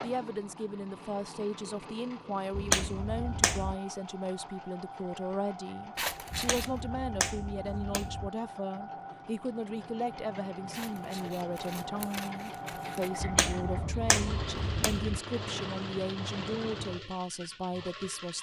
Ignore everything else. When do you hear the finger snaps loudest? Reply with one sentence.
The volume of the finger snaps peaks at 3 seconds.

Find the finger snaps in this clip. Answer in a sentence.
The finger snaps can be heard from 2.5 to 3.8 s, from 6.3 to 8.3 s and from 13.2 to 15.2 s.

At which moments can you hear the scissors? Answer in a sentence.
You can hear the scissors from 6.0 to 6.8 s and from 10.7 to 13.1 s.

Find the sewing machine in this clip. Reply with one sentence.
You can hear the sewing machine from 0.0 to 18.3 s.